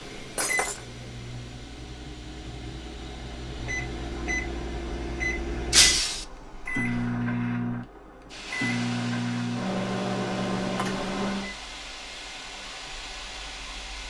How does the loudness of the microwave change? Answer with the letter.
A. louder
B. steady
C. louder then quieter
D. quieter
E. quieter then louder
A.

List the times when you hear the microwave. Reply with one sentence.
You can hear the microwave from 0.0 to 11.6 s.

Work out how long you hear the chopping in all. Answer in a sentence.
The chopping can't be heard in this clip.